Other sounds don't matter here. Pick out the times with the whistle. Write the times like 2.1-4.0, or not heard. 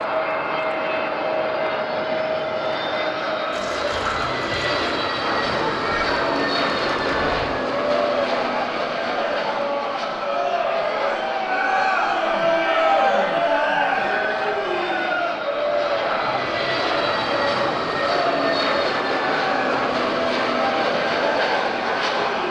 not heard.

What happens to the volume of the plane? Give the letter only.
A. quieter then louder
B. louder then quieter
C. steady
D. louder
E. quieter
A.